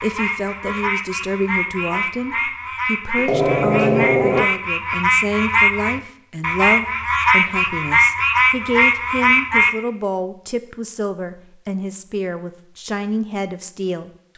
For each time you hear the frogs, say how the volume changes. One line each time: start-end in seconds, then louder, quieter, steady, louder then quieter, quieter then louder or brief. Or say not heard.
0.0-9.8 louder.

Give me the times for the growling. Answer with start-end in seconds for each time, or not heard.
3.1-4.5.